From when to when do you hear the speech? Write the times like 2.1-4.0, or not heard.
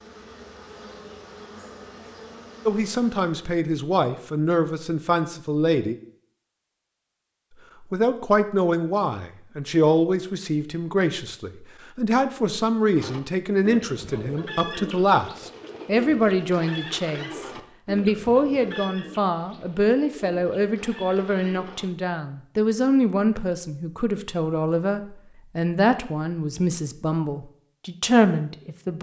2.6-6.0, 7.9-28.9.